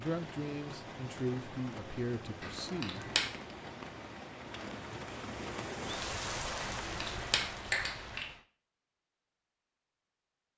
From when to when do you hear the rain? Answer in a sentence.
You can hear the rain from 0.0 to 8.4 s.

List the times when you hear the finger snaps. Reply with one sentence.
You can hear the finger snaps from 2.4 to 3.2 s and from 6.6 to 8.2 s.